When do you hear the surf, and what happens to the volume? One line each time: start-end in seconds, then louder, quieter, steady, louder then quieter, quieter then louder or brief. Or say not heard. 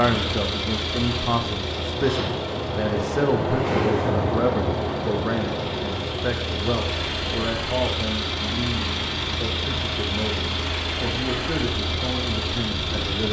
0.0-13.2 louder then quieter.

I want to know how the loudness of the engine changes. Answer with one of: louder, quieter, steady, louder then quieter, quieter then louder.
quieter then louder.